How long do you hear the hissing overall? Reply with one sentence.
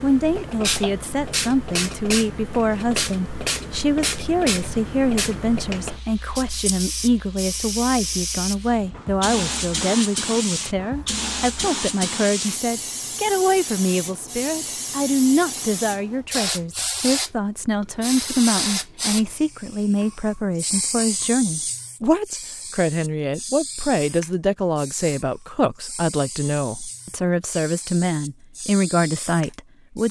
The hissing can be heard for 30 seconds in total.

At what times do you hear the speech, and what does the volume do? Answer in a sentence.
You can hear the speech from 0.0 to 30.0 s, at a steady volume.